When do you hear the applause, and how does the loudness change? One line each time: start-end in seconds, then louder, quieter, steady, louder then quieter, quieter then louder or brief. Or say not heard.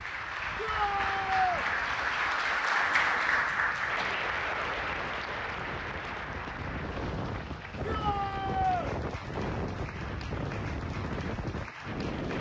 0.0-12.3 quieter.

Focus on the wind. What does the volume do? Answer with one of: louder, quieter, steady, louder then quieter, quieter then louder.
louder.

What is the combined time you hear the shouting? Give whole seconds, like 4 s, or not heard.
2 s.